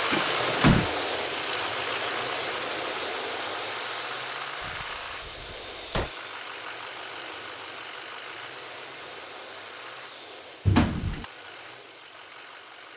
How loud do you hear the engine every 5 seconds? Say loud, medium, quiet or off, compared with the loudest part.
loud, medium, quiet.